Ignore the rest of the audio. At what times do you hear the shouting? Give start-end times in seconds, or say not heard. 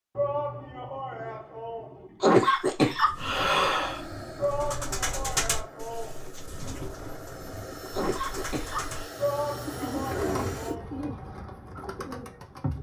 0.1-2.4, 4.3-6.3, 9.2-10.8.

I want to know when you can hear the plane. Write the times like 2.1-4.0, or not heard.
3.1-10.8.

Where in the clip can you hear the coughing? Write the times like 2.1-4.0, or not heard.
2.2-4.0, 8.0-9.1.